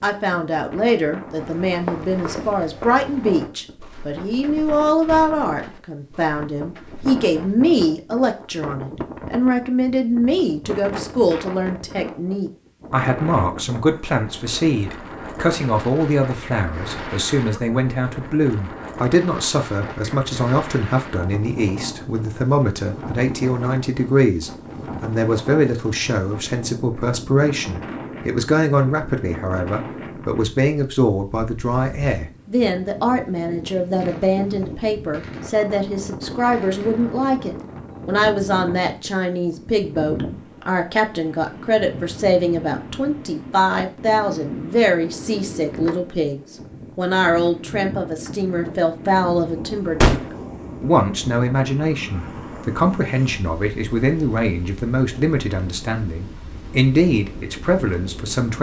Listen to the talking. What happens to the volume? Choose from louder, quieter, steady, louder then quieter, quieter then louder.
steady.